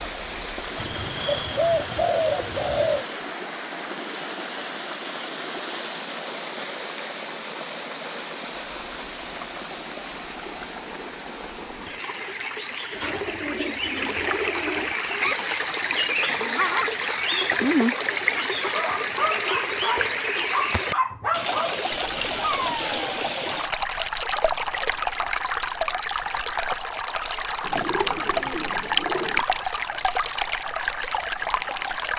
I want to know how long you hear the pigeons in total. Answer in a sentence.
The pigeons can be heard for 6 seconds in total.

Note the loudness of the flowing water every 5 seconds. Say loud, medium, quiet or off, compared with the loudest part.
medium, medium, medium, loud, loud, loud, loud.